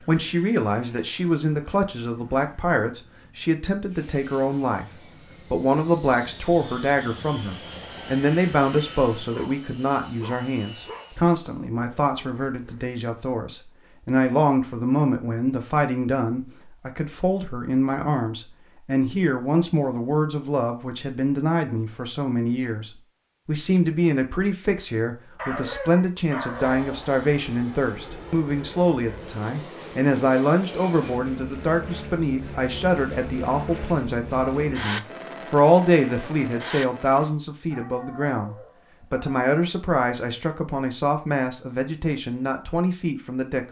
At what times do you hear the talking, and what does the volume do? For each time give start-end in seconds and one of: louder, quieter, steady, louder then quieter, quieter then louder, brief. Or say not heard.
0.0-43.6 steady.